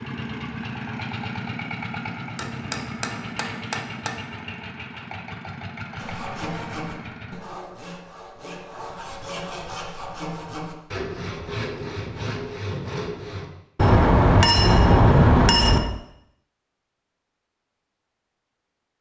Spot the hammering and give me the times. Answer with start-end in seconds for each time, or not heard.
2.4-4.2, 13.8-15.8.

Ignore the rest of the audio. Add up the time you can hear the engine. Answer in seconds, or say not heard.
7 s.